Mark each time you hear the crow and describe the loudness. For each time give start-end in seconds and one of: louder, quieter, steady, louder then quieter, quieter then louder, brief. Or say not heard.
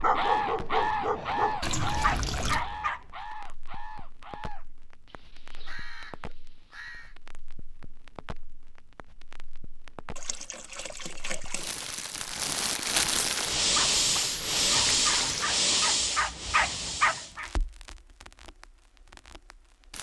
0.0-7.2 quieter.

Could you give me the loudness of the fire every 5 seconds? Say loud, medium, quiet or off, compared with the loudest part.
quiet, quiet, loud, loud.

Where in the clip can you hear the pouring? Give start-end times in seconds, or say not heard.
1.6-2.6, 10.2-11.8, 13.4-15.4.